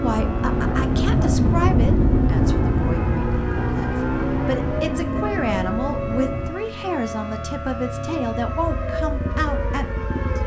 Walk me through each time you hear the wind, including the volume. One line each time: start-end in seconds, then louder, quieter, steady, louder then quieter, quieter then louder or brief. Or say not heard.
0.0-6.5 quieter.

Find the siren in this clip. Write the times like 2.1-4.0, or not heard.
0.0-10.4.